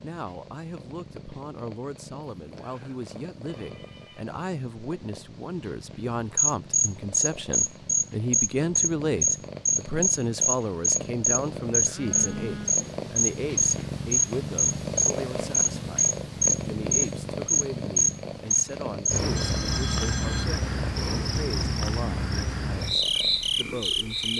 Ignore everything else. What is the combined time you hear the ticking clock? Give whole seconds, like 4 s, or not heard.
not heard.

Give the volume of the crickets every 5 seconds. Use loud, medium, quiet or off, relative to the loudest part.
off, loud, loud, loud, medium.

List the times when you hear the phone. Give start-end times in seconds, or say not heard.
2.4-4.2, 11.8-12.8, 19.4-20.5.